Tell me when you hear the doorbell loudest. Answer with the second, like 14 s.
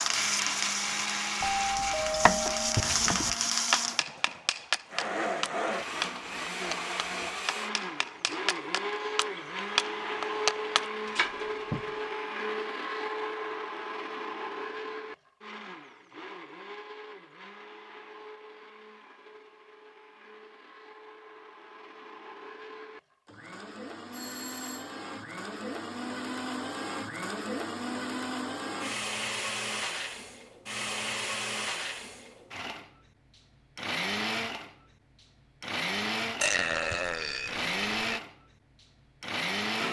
2 s.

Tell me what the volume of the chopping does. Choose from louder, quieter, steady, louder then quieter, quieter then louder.
quieter then louder.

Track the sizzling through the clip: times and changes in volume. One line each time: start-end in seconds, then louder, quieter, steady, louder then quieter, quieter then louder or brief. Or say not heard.
0.0-4.0 quieter then louder.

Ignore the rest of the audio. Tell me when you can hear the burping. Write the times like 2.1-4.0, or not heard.
2.8-3.4, 36.4-38.2.